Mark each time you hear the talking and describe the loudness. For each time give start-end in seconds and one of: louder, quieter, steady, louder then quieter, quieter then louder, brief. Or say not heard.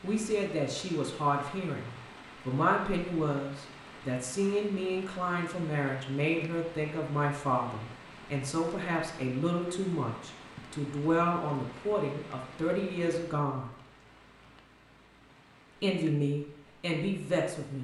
0.0-13.7 steady
15.8-17.8 brief.